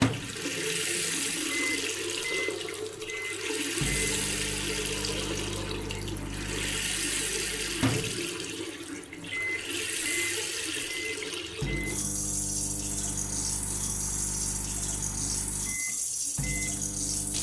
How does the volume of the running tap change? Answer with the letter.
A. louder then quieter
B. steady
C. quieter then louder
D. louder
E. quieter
B.